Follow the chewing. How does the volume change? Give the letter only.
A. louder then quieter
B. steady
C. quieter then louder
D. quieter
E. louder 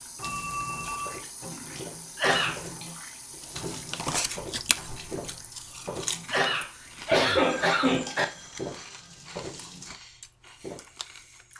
D.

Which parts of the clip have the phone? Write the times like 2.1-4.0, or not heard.
0.2-1.2, 7.4-9.2.